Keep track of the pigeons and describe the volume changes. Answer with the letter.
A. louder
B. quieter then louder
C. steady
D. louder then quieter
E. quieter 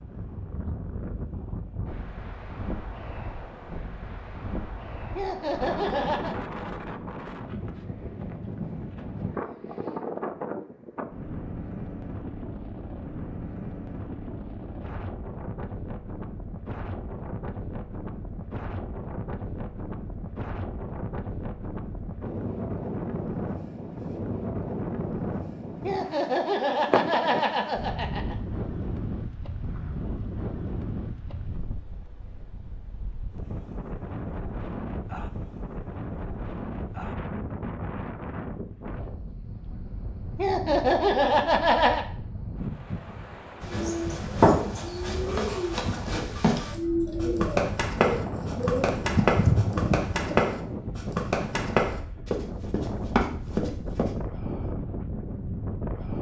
A.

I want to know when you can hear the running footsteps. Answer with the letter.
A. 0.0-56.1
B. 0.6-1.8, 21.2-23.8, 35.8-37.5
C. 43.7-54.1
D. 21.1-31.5
C.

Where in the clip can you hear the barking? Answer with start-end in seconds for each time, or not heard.
not heard.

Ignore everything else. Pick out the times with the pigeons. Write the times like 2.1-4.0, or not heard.
43.6-50.5.